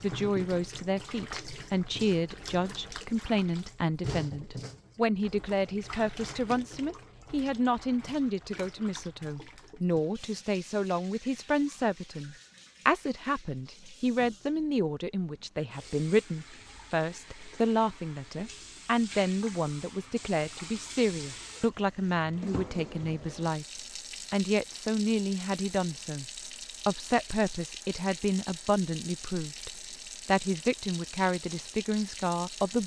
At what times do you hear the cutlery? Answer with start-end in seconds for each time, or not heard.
not heard.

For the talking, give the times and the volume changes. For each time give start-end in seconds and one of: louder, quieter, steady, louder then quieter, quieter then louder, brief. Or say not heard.
0.0-23.6 steady
24.3-26.2 brief
26.9-32.8 steady.